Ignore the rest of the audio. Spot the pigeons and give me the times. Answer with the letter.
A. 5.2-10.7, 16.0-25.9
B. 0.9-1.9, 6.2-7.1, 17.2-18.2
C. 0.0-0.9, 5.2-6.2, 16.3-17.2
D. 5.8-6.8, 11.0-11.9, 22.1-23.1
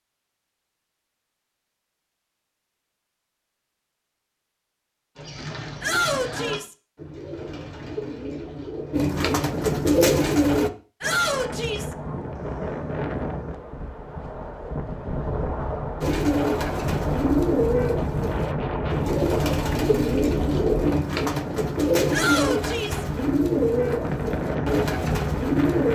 A.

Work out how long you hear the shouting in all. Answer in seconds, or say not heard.
3 s.